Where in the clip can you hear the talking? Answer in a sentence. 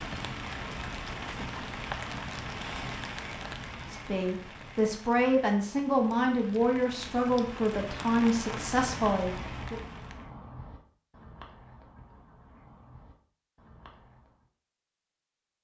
The talking can be heard from 3.9 to 9.8 s.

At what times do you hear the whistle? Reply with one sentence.
The whistle can't be heard in this clip.